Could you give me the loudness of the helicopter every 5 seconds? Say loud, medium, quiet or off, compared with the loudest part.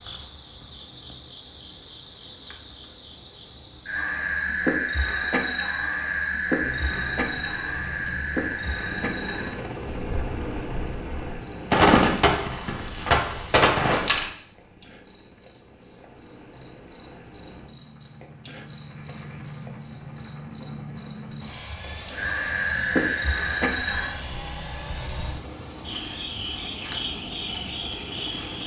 off, loud, loud, medium, loud, loud.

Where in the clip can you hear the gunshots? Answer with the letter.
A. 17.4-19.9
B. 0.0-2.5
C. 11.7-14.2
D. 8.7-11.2
C.